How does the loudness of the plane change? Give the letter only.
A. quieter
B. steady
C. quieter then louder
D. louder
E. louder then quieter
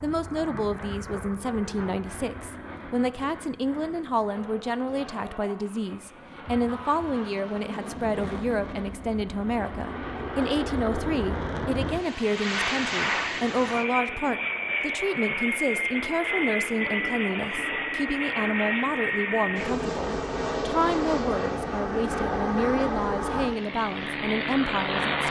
D.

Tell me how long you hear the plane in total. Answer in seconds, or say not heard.
25 s.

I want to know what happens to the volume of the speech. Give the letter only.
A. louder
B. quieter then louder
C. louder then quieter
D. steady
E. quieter
D.